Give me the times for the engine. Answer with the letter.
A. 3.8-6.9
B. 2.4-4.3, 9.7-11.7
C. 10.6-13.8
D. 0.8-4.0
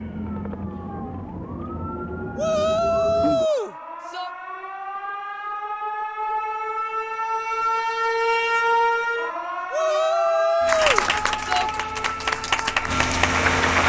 C.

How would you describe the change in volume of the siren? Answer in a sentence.
The volume of the siren goes up, then down.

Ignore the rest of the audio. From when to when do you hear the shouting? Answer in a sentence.
The shouting can be heard from 2.4 to 4.3 s and from 9.7 to 11.7 s.